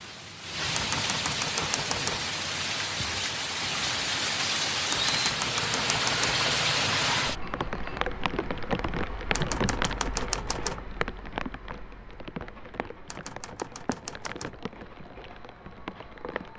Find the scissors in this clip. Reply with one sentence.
The scissors can't be heard in this clip.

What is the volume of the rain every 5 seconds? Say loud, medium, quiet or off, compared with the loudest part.
loud, loud, medium, quiet.